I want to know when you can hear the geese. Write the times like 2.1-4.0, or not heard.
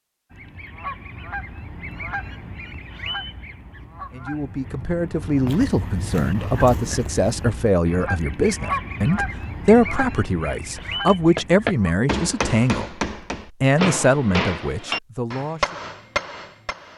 0.3-11.9.